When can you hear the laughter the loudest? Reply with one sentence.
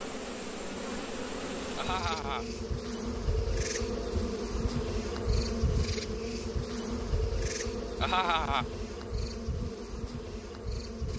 The volume of the laughter peaks at 8 seconds.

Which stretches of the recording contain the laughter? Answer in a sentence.
The laughter can be heard from 1.8 to 2.5 s and from 8.0 to 8.7 s.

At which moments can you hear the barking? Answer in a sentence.
The barking can't be heard in this clip.